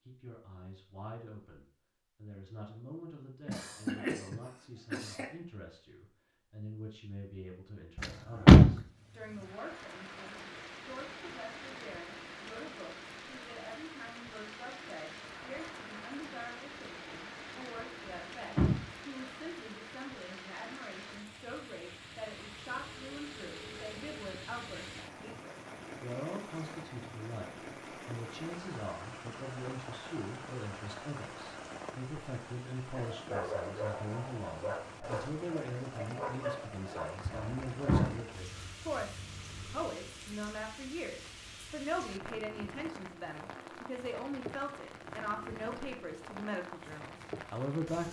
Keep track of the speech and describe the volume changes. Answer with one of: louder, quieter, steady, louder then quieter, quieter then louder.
louder.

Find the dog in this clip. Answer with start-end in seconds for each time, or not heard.
33.0-38.2.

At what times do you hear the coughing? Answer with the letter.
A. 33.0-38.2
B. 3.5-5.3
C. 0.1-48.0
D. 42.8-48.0
B.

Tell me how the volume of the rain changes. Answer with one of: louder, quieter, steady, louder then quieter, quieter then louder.
steady.